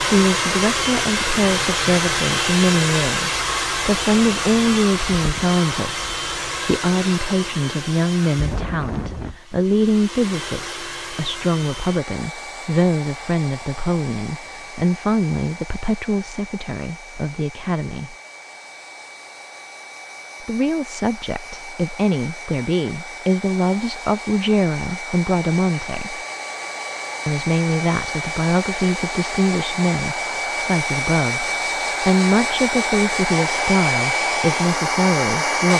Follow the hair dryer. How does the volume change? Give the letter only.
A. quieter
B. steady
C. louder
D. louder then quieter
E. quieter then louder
E.